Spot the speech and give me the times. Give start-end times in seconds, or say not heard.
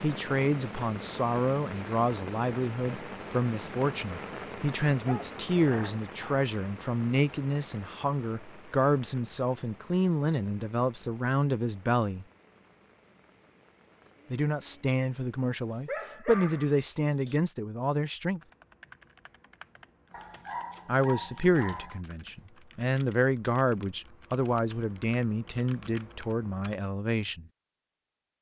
0.0-12.2, 14.3-18.4, 20.9-27.4.